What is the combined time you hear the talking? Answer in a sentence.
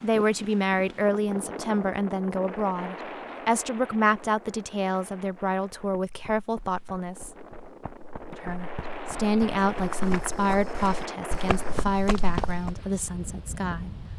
The talking can be heard for 13 seconds in total.